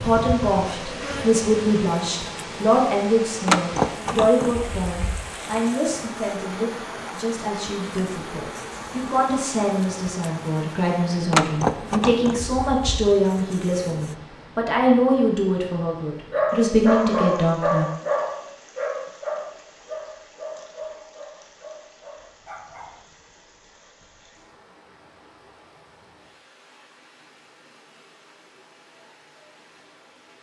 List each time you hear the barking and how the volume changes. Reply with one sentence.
The barking can be heard from 16.3 to 23.0 s, getting quieter.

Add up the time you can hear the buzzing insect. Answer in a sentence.
The buzzing insect can be heard for 14 seconds in total.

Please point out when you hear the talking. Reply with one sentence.
The talking can be heard from 0.0 to 17.9 s.